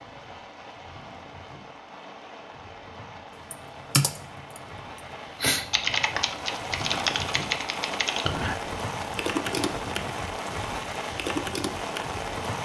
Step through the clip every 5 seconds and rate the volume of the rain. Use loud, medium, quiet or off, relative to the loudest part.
medium, loud, loud.